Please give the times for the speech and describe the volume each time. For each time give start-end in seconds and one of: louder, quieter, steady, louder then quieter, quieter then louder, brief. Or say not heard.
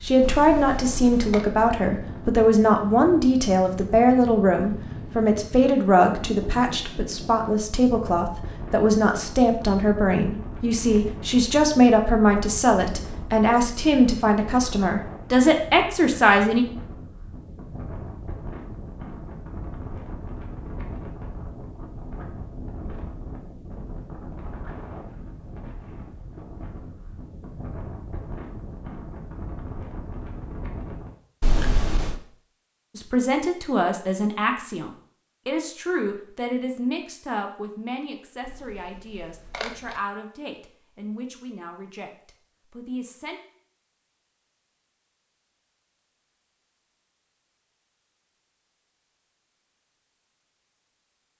0.0-16.6 steady
33.0-43.4 quieter.